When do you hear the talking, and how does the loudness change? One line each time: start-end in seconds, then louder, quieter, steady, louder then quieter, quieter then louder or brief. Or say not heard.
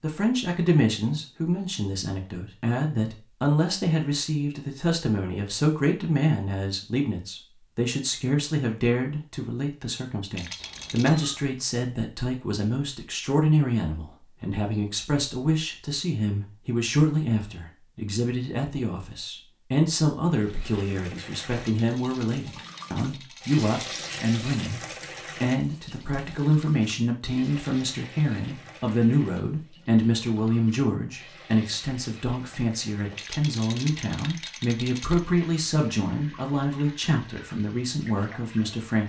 0.0-39.0 steady.